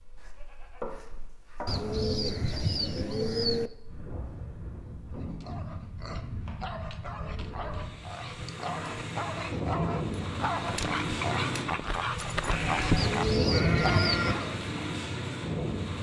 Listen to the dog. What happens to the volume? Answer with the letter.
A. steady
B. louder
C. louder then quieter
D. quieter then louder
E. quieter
B.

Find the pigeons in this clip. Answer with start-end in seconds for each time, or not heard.
1.6-3.7, 7.0-9.1, 12.9-14.5.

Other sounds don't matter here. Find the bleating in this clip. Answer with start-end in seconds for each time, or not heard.
0.2-1.8, 12.5-14.3.